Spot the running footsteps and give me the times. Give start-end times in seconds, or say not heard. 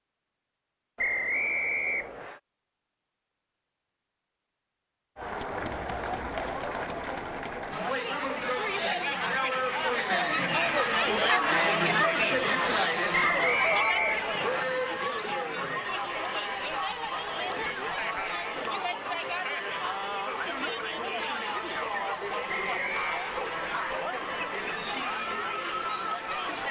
not heard.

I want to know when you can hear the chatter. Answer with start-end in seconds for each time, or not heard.
5.2-26.6.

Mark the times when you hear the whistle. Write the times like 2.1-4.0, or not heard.
0.9-2.4, 13.1-14.7, 22.4-23.3.